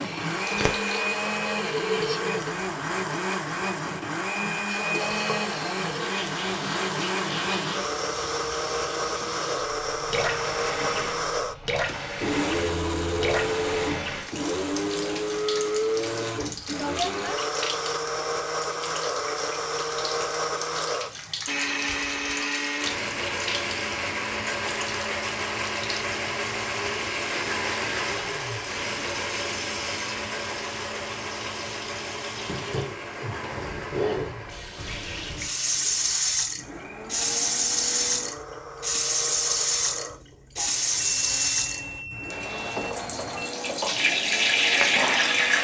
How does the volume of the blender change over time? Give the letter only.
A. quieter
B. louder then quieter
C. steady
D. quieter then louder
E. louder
A.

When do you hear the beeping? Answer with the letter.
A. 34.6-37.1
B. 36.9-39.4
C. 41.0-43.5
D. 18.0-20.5
C.